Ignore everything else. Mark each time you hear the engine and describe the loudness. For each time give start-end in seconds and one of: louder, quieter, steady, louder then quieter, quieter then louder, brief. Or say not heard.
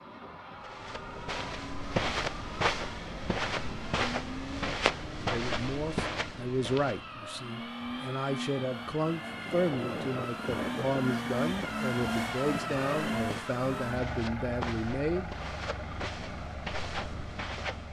0.0-17.8 louder then quieter.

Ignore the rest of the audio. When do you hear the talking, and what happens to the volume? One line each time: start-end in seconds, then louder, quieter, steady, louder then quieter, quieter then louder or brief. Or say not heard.
5.3-15.3 steady.